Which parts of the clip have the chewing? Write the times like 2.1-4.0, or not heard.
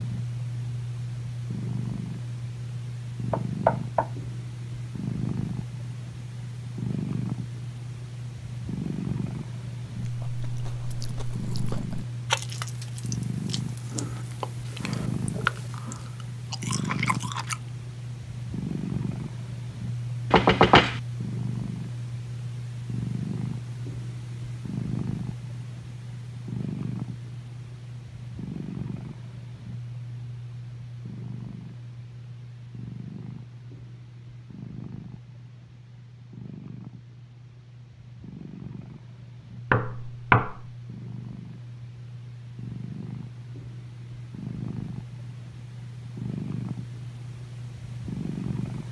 10.0-17.6.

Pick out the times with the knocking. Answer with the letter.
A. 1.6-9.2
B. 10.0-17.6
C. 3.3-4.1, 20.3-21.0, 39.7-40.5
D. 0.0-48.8
C.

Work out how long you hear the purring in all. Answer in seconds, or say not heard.
49 s.